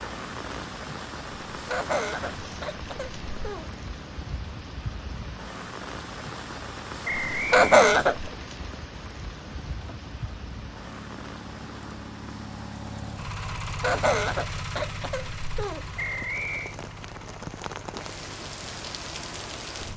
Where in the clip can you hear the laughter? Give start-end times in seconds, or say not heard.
1.5-3.6, 7.3-8.3, 13.7-15.8.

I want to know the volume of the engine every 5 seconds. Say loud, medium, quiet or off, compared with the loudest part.
medium, medium, loud, medium.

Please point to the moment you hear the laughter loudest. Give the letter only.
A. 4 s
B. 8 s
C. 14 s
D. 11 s
B.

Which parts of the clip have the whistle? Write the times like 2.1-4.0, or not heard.
7.0-7.7, 15.9-16.8.